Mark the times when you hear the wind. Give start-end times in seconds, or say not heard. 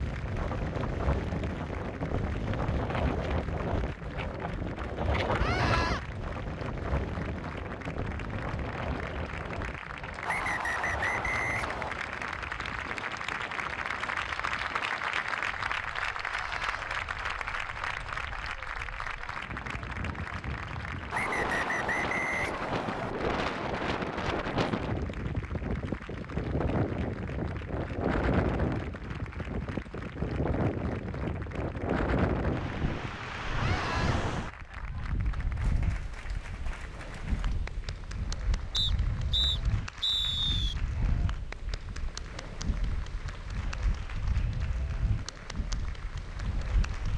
0.0-47.1.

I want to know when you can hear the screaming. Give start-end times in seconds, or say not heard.
5.3-6.0, 16.2-16.9, 33.5-34.2.